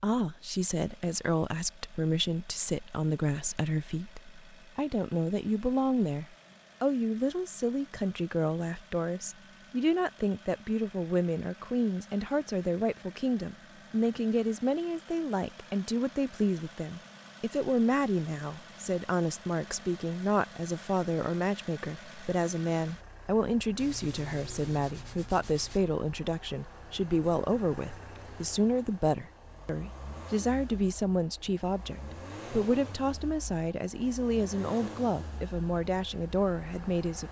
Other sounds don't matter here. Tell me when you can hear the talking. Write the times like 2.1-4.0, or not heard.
0.0-37.2.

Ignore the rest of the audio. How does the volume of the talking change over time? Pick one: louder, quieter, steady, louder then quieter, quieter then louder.
steady.